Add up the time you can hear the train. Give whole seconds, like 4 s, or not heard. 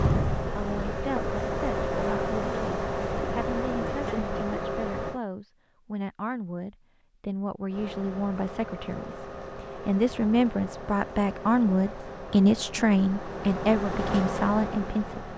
13 s.